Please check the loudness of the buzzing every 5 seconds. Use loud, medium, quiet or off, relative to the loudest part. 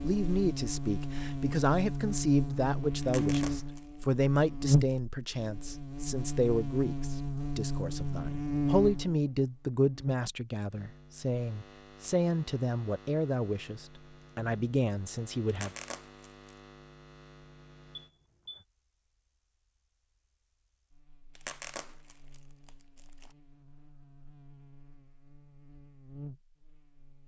loud, loud, quiet, quiet, quiet, quiet.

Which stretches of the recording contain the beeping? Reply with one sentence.
The beeping can be heard from 17.9 to 18.6 s.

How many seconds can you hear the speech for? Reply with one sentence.
The speech can be heard for 16 seconds in total.